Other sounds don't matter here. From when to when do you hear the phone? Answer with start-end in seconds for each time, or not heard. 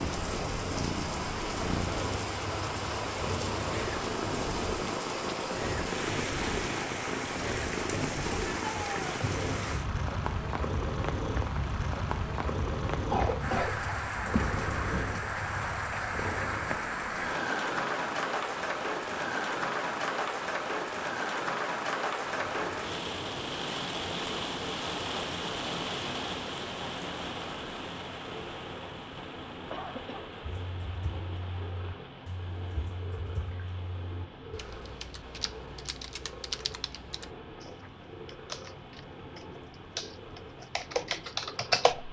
not heard.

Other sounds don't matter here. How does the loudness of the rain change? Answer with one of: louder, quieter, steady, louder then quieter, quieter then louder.
quieter.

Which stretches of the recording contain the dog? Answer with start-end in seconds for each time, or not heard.
not heard.